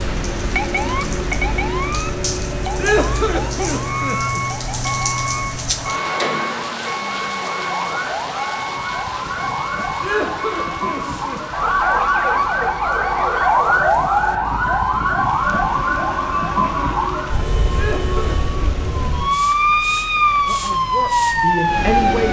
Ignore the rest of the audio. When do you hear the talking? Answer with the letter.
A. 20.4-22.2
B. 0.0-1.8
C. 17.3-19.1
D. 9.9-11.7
A.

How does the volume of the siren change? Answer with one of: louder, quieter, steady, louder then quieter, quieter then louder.
louder.